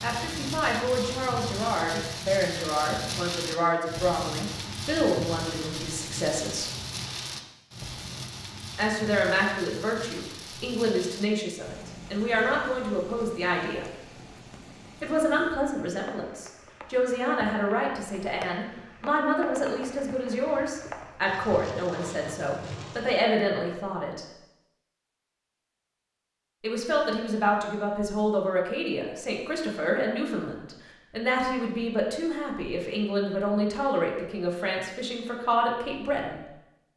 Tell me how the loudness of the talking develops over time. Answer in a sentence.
The volume of the talking stays about the same.